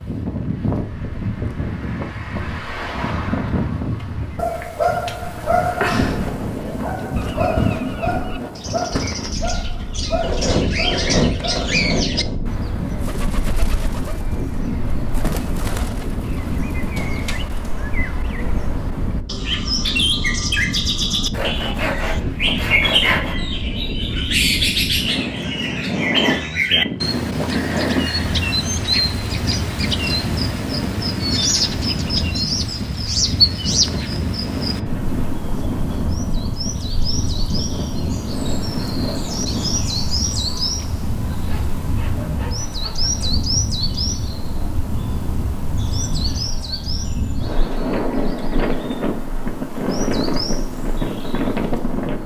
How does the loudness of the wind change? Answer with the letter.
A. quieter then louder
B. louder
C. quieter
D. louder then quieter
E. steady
E.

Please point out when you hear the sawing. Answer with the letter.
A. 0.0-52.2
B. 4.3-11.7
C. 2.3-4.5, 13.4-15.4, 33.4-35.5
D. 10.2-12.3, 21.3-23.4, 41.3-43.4
D.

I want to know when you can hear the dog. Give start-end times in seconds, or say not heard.
4.3-11.7.